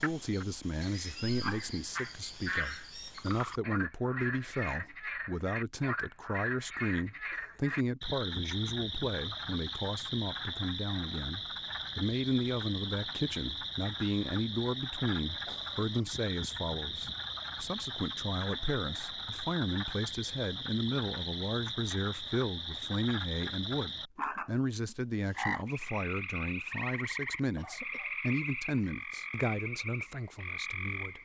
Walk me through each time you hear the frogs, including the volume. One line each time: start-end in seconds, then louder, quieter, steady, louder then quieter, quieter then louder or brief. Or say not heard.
0.0-31.2 steady.